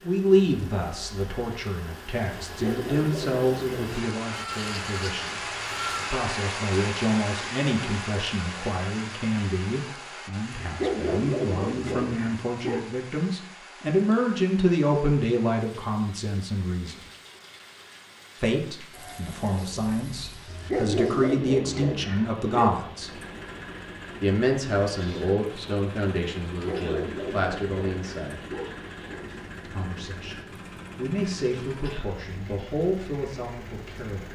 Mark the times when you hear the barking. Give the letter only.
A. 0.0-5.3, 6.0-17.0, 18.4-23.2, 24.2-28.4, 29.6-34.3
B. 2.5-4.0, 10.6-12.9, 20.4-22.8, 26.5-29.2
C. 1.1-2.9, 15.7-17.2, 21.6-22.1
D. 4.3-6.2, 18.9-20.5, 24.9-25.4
B.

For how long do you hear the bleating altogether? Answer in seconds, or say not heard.
4 s.